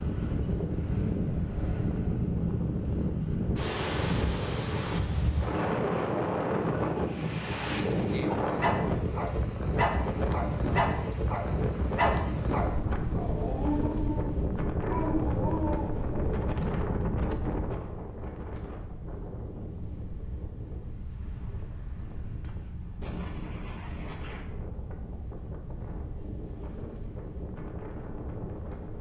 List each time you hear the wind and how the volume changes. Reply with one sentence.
The wind can be heard from 0.0 to 28.9 s, getting quieter.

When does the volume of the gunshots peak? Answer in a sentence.
The volume of the gunshots peaks at 23 seconds.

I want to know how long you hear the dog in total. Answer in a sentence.
You can hear the dog for 8 seconds altogether.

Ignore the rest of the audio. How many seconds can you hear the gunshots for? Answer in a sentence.
The gunshots can be heard for 2 seconds in total.